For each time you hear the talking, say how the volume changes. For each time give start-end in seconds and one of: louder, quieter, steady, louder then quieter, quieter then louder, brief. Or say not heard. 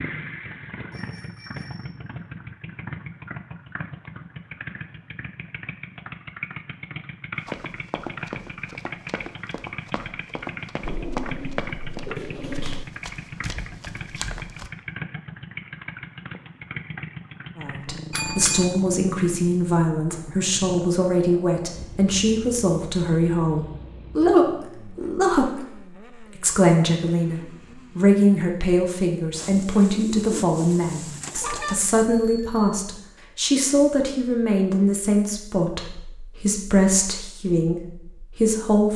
17.6-38.9 steady.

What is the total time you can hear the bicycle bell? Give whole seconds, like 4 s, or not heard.
3 s.